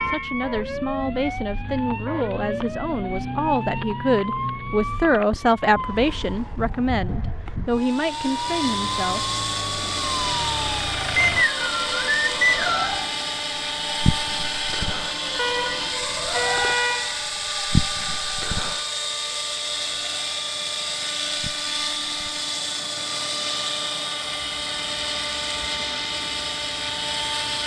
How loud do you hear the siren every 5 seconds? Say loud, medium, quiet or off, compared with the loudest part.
loud, loud, loud, loud, quiet, quiet.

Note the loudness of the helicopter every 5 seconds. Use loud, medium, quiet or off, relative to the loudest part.
off, loud, loud, loud, loud, loud.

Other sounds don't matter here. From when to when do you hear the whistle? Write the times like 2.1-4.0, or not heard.
11.2-12.8.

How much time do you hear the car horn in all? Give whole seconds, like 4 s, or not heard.
2 s.